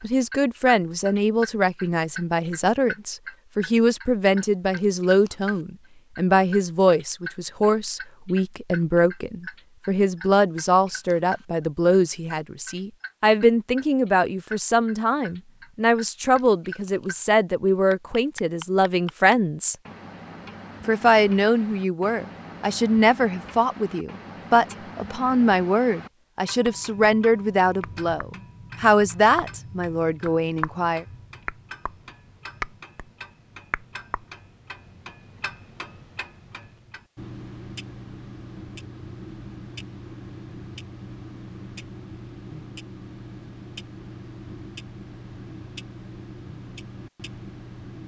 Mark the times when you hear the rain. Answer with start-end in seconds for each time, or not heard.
not heard.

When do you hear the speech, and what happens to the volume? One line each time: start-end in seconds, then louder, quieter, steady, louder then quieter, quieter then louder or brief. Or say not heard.
0.0-19.8 steady
20.9-31.1 steady.